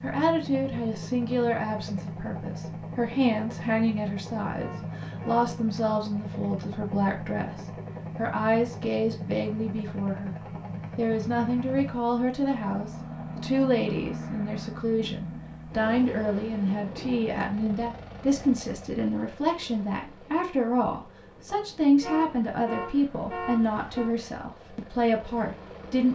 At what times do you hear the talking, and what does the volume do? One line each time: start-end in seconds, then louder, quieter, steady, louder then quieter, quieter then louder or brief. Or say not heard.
0.0-26.0 steady.